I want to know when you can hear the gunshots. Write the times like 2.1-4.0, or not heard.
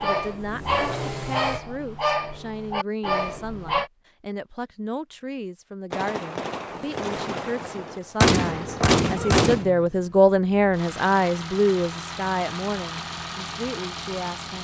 5.9-9.7.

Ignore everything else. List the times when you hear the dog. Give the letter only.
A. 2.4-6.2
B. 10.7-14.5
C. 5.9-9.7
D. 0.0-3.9
D.